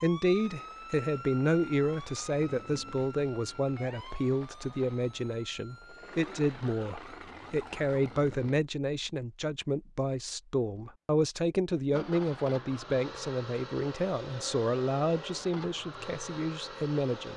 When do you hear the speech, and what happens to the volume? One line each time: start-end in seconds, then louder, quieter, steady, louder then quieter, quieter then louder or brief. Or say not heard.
0.0-17.3 steady.